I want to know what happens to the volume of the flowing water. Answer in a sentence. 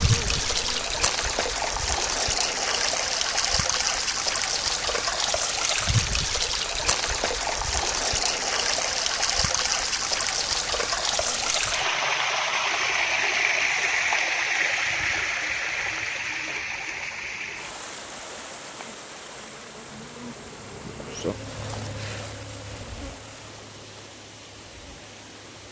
The volume of the flowing water goes down.